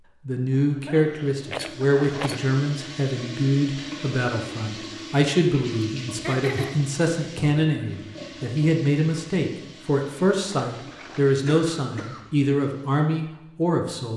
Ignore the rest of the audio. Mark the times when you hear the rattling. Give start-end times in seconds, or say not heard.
1.4-2.5, 10.4-11.3.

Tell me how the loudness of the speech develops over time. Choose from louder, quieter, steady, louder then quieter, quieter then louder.
steady.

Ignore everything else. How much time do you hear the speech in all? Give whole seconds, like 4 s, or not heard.
14 s.